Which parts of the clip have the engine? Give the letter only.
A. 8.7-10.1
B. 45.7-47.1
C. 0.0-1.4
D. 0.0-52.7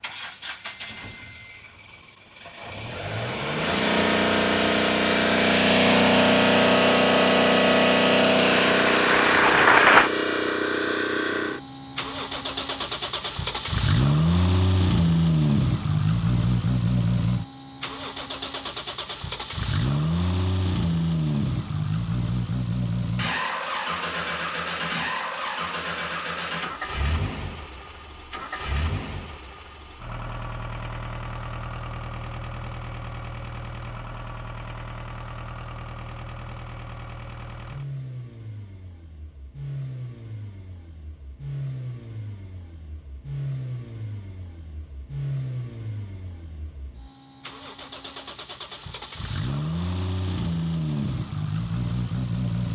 D.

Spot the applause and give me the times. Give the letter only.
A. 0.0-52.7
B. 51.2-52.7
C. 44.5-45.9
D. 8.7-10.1
D.